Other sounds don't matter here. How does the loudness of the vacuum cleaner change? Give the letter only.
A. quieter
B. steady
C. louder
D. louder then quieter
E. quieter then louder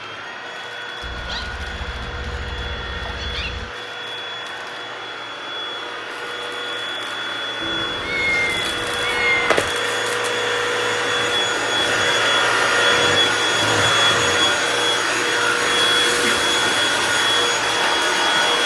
C.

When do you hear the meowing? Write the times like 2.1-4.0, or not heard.
1.0-3.7, 7.6-9.7, 15.6-16.6.